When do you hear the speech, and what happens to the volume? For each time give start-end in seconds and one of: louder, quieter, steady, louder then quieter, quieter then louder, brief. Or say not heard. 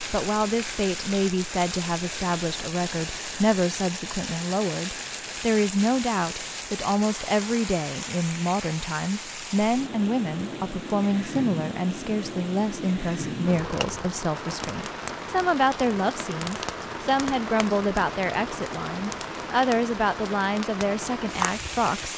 0.1-22.1 steady.